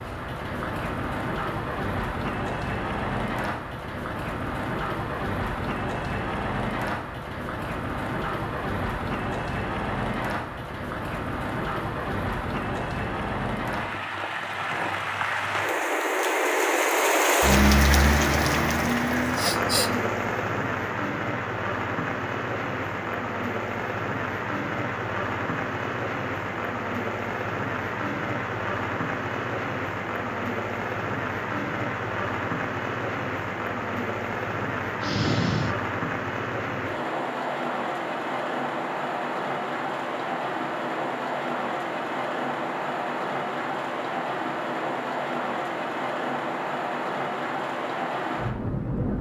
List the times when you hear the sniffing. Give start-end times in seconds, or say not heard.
19.4-19.9, 35.0-35.8.